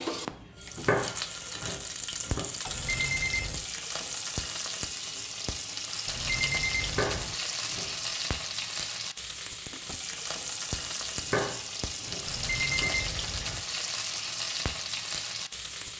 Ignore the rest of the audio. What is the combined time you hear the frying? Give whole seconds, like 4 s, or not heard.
16 s.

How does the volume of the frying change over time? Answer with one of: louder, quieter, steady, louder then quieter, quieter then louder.
steady.